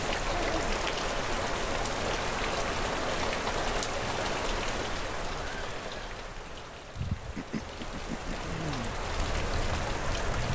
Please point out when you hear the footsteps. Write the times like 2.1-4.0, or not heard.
not heard.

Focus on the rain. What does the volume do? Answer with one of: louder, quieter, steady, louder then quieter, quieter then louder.
quieter then louder.